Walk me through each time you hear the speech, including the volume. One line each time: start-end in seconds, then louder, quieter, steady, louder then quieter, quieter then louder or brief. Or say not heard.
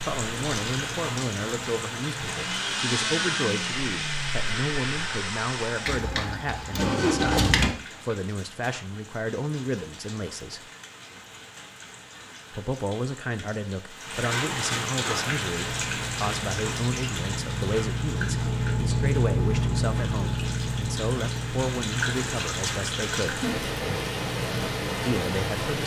0.1-10.6 steady
12.5-23.4 steady
25.0-25.8 brief.